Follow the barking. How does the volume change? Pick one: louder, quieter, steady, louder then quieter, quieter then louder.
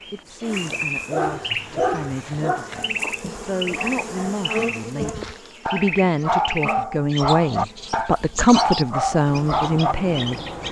quieter then louder.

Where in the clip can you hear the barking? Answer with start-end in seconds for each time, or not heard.
0.4-9.9.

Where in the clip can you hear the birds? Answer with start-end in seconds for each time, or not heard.
0.0-10.6.